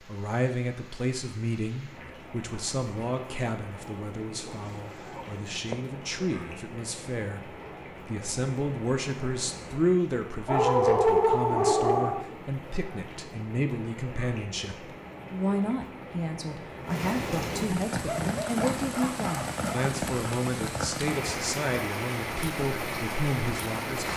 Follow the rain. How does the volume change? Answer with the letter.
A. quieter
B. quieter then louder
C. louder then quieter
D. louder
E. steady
D.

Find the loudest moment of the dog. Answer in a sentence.
The loudest moment of the dog is at 11 seconds.